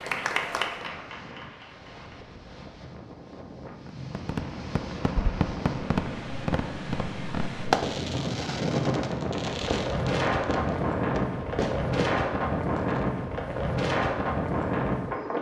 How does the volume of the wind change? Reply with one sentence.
The loudness of the wind goes up.